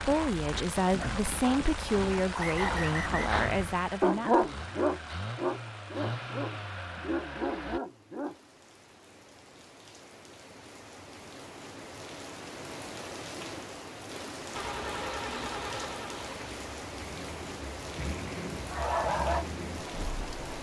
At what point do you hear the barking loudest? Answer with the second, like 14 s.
4 s.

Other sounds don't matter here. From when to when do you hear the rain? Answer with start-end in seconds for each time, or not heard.
0.0-20.5.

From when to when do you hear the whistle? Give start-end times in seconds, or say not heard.
2.4-3.3.